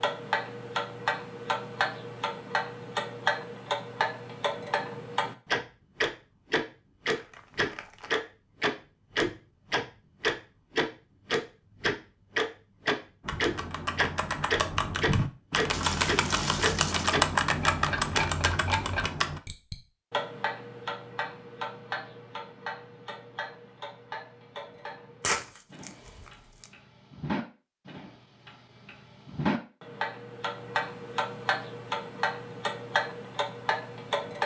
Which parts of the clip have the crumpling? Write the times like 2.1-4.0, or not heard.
7.1-8.1, 15.7-17.2, 25.2-26.6.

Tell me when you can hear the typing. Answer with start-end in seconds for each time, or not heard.
13.2-19.4.